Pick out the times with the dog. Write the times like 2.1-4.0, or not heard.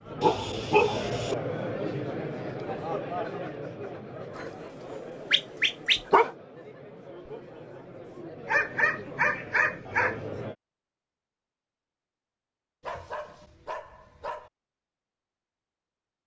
0.2-1.4, 4.3-6.3, 8.4-10.2, 12.8-14.5.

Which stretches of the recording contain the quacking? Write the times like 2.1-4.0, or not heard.
not heard.